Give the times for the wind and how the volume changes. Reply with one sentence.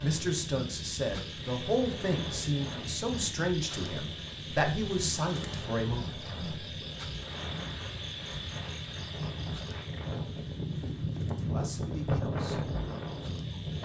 You can hear the wind from 0.0 to 13.8 s, getting louder.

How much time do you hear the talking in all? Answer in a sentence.
You can hear the talking for 8 seconds altogether.